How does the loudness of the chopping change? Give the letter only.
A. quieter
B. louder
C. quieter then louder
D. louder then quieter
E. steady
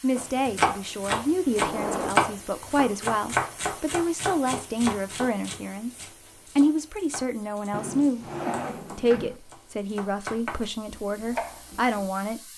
C.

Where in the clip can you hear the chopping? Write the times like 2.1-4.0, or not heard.
0.1-12.1.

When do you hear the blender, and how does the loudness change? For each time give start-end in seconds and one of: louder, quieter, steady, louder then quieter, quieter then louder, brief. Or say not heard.
not heard.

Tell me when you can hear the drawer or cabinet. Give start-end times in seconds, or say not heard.
1.6-2.1, 7.7-9.4.